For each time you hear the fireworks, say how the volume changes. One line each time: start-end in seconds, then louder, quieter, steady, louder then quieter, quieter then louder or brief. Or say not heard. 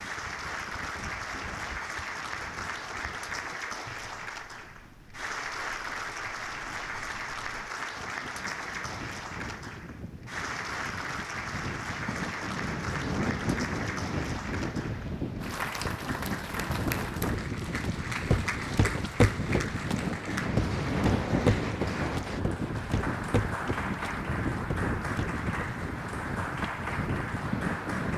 not heard.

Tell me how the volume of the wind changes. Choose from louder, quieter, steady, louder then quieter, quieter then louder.
louder.